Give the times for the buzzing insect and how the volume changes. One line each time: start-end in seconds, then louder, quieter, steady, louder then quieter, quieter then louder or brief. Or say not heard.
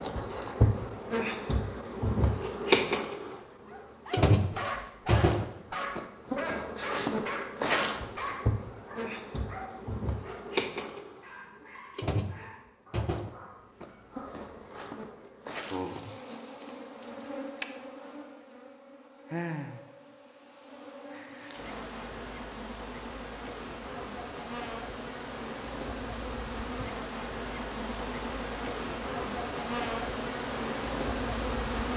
0.0-31.9 quieter then louder.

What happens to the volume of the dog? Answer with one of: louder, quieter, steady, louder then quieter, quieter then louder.
quieter.